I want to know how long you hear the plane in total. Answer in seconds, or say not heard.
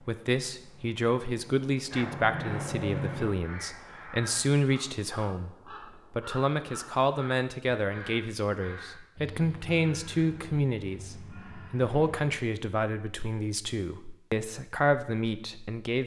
3 s.